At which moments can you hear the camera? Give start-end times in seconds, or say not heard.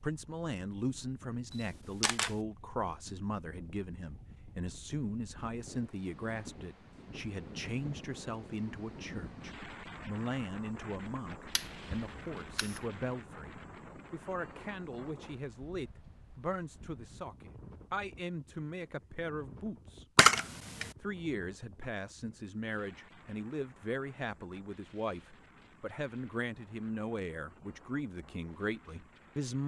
1.5-2.4, 11.6-12.9, 20.1-20.9.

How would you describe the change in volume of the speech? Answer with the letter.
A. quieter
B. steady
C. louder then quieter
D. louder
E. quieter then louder
B.